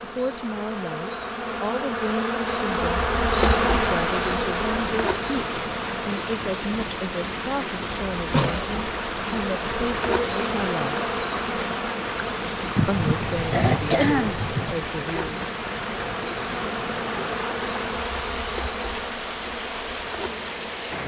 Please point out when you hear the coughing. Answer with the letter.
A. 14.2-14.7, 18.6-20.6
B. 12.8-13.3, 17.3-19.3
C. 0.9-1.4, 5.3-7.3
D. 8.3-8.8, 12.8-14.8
D.